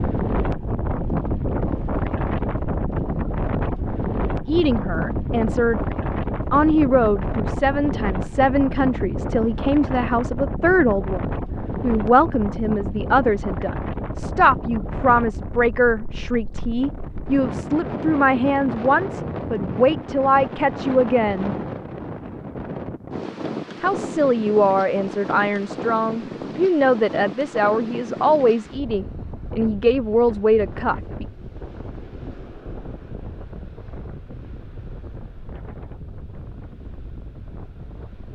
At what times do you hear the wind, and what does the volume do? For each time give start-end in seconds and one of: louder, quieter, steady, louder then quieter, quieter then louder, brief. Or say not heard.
0.0-38.3 quieter.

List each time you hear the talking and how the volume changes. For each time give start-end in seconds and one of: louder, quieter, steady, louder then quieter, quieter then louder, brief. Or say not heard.
4.5-5.8 brief
6.5-21.6 steady
23.8-31.2 steady.